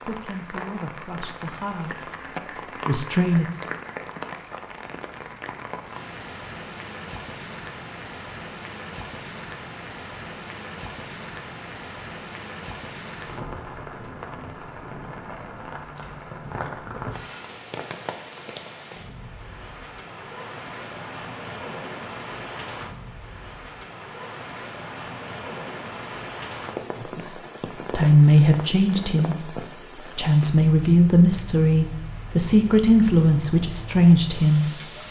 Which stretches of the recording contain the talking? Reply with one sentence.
You can hear the talking from 0.0 to 3.6 s and from 26.9 to 34.9 s.